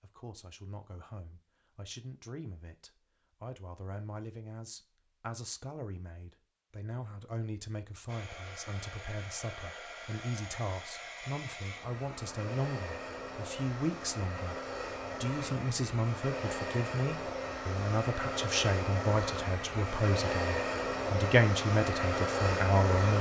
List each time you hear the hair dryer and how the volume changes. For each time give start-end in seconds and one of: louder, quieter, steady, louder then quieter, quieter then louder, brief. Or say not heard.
8.1-23.1 louder.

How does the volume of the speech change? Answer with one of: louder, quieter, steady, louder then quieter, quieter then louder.
louder.